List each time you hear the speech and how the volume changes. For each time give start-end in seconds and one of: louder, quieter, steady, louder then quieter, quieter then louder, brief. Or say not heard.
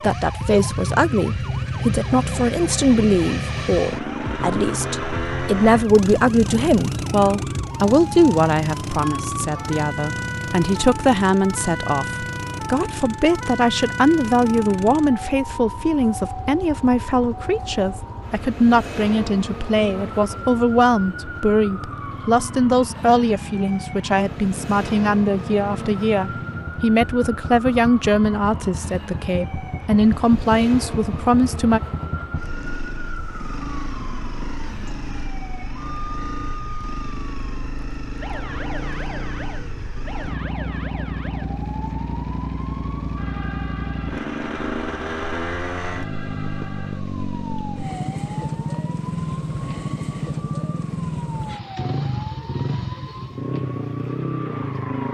0.0-31.8 steady.